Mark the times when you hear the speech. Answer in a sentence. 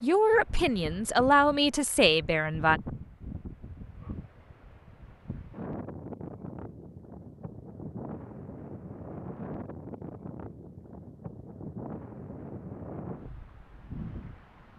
The speech can be heard from 0.0 to 2.8 s.